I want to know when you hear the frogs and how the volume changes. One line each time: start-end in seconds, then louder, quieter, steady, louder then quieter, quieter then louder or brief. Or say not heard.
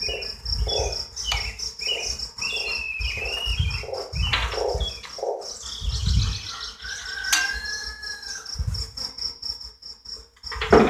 0.0-5.4 quieter then louder.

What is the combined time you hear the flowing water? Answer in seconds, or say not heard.
not heard.